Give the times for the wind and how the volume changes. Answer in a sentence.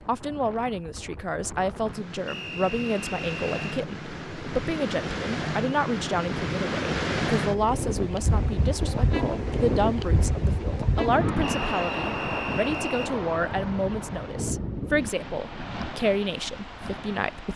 The wind can be heard from 0.0 to 17.5 s, getting louder then quieter.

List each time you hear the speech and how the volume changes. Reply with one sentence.
The speech can be heard from 0.1 to 17.5 s, at a steady volume.